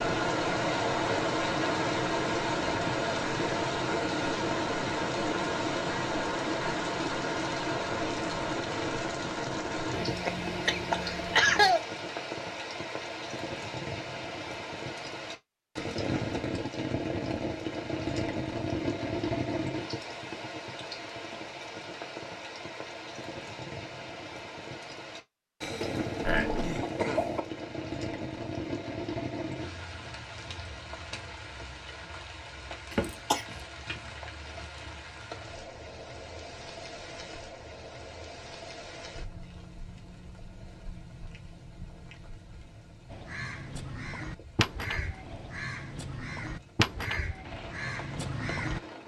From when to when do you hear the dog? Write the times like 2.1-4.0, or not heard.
not heard.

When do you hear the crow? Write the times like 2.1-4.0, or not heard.
43.1-48.8.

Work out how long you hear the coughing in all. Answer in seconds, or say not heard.
4 s.